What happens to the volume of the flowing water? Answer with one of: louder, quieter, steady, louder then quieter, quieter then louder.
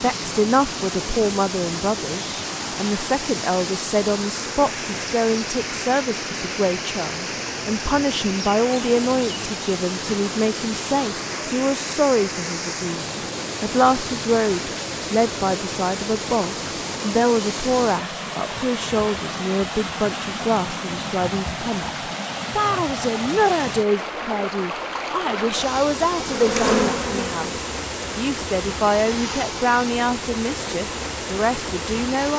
steady.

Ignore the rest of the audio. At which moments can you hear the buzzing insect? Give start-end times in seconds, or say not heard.
25.9-27.4.